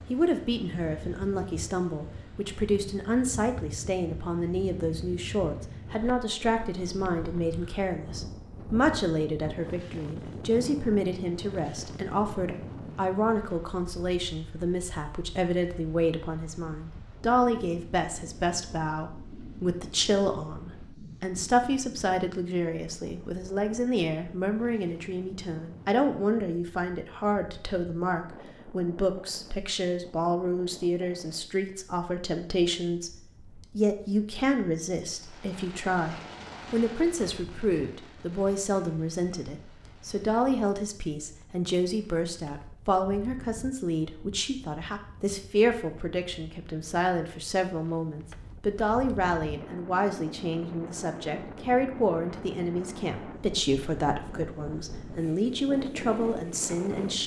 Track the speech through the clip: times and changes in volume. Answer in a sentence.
You can hear the speech from 0.1 to 57.2 s, at a steady volume.